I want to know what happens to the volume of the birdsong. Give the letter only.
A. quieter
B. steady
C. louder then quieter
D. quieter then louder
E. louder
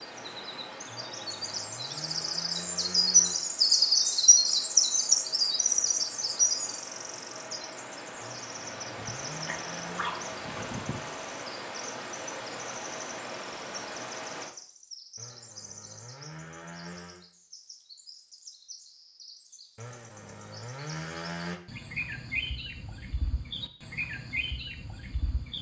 D.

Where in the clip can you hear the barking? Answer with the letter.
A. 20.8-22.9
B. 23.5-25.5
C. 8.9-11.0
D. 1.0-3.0
C.